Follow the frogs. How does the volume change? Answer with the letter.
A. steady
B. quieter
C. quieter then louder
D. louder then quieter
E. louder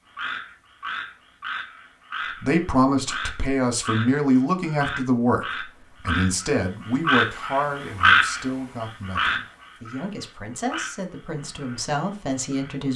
D.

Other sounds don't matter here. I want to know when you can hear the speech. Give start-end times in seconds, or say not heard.
2.4-12.9.